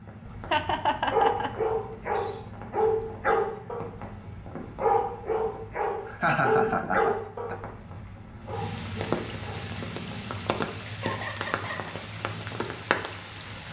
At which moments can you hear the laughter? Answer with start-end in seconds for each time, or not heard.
0.5-1.5, 6.0-7.5, 10.9-11.9.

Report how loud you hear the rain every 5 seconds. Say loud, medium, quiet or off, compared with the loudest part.
medium, loud, loud.